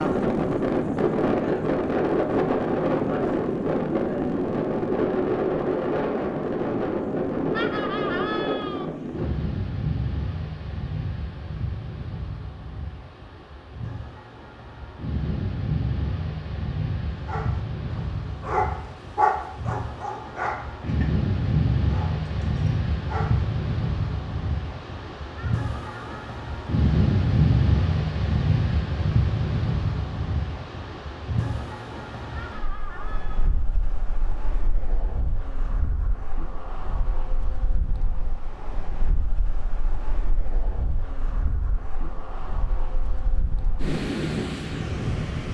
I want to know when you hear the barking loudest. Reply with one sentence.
The volume of the barking peaks at 19 seconds.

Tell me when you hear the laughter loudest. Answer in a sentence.
The loudest moment of the laughter is at 8 seconds.